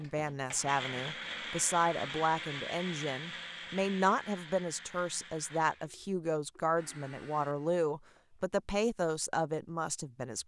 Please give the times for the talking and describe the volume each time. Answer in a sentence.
The talking can be heard from 0.0 to 10.4 s, at a steady volume.